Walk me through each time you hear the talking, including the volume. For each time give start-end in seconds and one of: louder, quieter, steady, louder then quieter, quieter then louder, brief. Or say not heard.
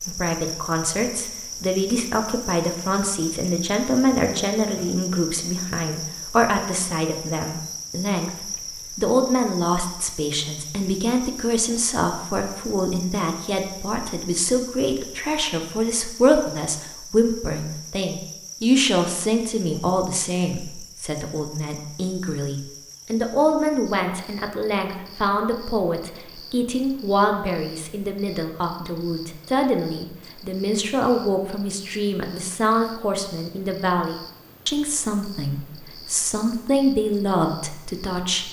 0.1-38.4 steady.